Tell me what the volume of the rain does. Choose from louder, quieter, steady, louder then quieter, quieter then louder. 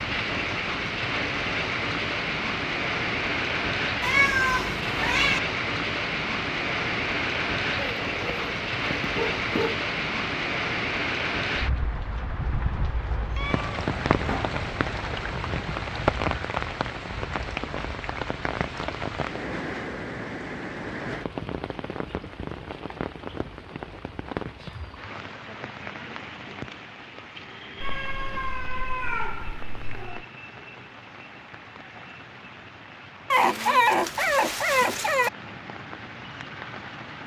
quieter.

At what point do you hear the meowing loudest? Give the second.
4 s.